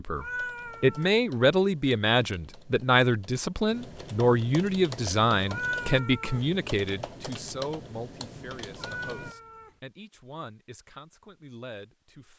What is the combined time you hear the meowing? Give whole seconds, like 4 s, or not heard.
3 s.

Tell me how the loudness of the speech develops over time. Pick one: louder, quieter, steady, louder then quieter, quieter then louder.
quieter.